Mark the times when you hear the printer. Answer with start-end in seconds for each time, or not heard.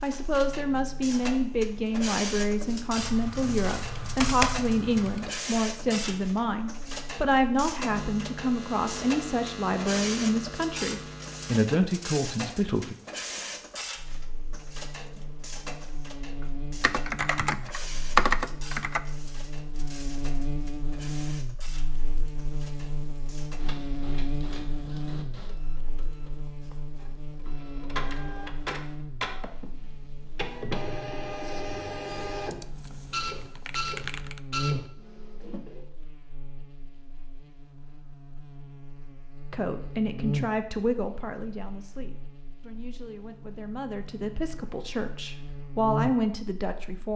0.0-35.9.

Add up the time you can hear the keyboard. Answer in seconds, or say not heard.
7 s.